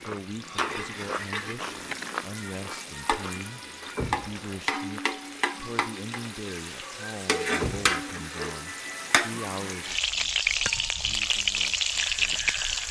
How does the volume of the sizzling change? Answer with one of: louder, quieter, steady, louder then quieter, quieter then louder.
louder.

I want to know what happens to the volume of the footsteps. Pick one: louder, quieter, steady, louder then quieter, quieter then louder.
quieter.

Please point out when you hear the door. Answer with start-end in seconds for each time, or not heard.
4.0-4.7, 7.6-8.1.